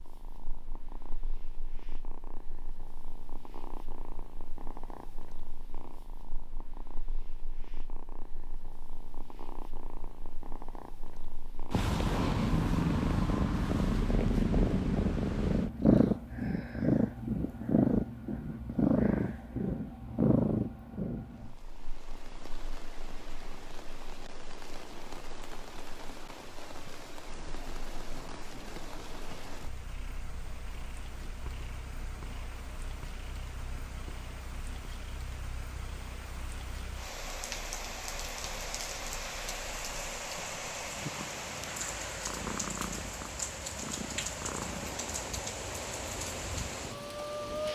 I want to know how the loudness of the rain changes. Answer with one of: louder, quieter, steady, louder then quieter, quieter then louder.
louder.